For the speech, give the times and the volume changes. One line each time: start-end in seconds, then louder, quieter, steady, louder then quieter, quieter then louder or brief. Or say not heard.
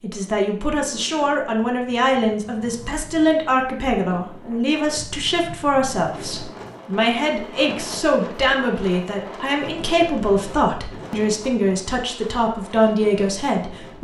0.0-13.9 steady.